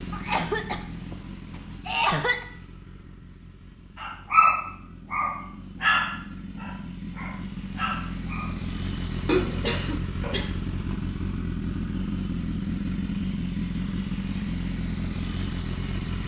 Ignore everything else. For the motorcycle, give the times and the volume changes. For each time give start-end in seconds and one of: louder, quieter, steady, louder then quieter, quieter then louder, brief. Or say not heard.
0.0-16.2 louder.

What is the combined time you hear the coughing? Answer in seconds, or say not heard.
4 s.